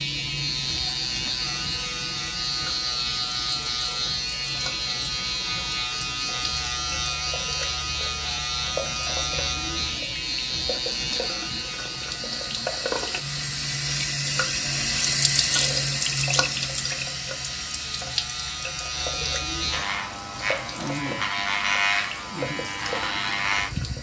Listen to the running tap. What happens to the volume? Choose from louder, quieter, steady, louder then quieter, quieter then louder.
louder then quieter.